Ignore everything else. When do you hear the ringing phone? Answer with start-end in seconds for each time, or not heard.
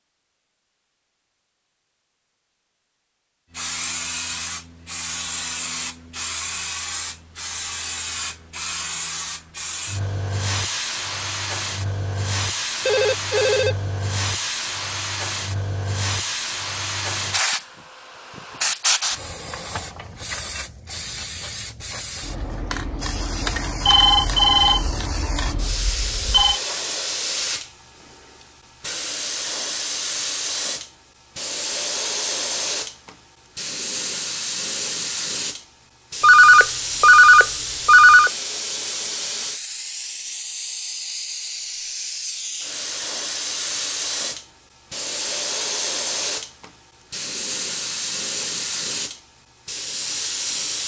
12.8-13.8, 23.9-26.6, 36.2-38.3.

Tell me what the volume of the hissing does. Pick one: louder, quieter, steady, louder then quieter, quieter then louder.
steady.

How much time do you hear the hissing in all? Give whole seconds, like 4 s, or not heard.
47 s.